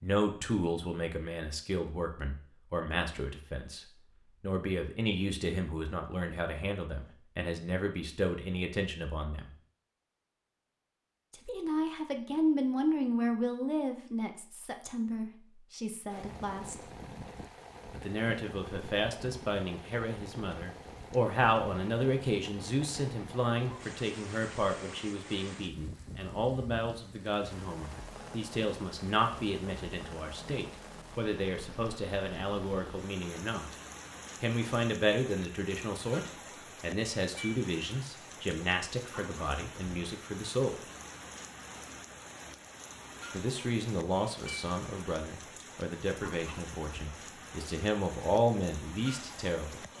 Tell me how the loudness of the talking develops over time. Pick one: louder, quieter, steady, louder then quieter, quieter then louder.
steady.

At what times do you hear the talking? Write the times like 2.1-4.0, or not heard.
0.0-9.5, 11.3-16.9, 17.9-33.8, 34.4-40.8, 43.3-49.8.